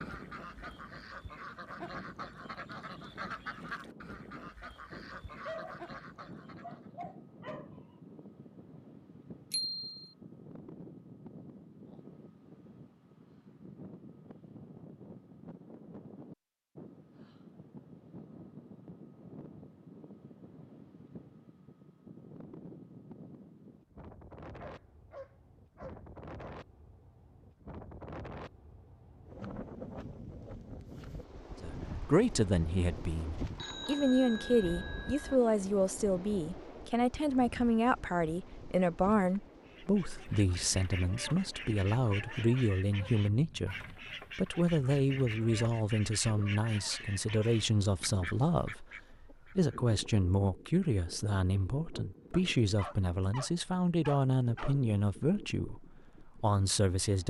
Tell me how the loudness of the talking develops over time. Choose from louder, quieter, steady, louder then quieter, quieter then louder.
steady.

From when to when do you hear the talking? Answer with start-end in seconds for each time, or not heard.
31.6-57.2.